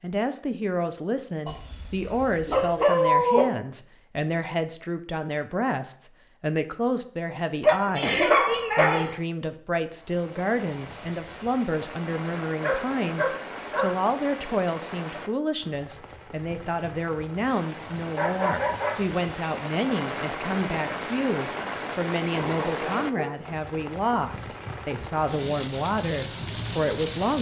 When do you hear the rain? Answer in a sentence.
The rain can be heard from 9.8 to 27.3 s.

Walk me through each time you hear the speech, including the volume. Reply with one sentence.
You can hear the speech from 0.0 to 27.3 s, at a steady volume.